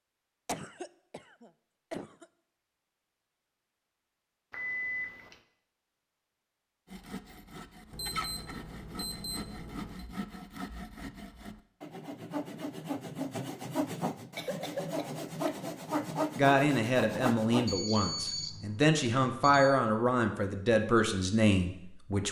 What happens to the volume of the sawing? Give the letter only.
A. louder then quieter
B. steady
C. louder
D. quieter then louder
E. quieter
C.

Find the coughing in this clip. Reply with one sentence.
The coughing can be heard from 0.5 to 2.2 s and from 14.3 to 15.7 s.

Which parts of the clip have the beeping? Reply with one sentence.
You can hear the beeping from 4.5 to 5.3 s, from 7.9 to 10.1 s and from 17.6 to 19.8 s.